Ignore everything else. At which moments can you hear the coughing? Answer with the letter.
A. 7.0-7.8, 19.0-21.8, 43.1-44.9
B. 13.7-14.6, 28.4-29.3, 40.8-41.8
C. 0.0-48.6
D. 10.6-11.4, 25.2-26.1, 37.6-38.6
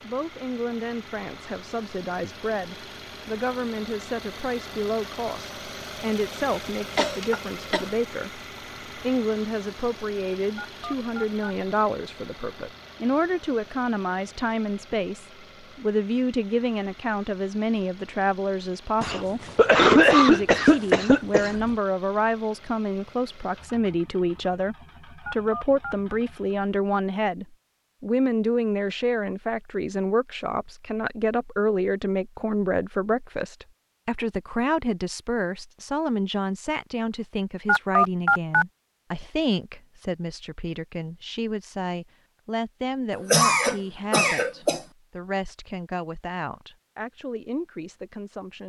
A.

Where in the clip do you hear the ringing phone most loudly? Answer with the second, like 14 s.
38 s.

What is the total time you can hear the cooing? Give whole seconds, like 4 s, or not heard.
not heard.